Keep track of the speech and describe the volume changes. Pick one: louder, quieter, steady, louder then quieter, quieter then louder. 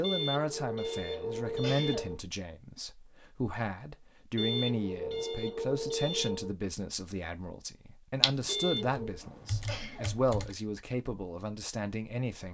steady.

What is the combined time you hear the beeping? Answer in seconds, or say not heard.
5 s.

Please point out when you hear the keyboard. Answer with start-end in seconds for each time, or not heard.
8.2-10.5.